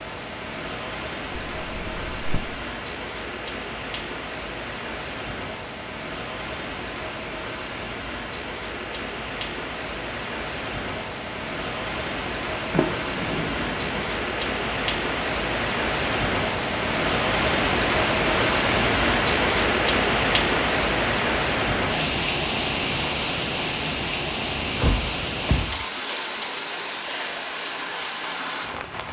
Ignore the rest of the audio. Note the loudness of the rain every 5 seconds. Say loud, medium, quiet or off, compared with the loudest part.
medium, medium, medium, loud, loud, medium.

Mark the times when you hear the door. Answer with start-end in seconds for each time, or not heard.
1.4-2.4, 12.7-14.1, 24.6-25.9.